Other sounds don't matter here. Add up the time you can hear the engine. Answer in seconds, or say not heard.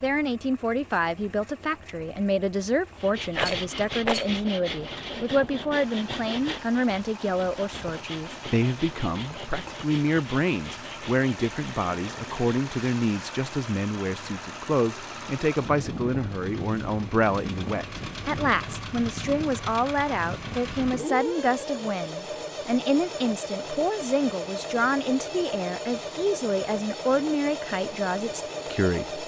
29 s.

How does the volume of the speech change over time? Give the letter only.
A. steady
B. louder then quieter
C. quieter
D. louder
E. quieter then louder
A.